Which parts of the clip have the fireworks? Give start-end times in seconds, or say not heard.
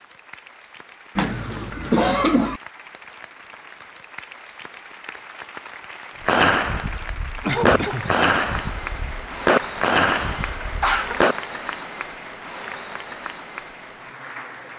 6.2-11.3.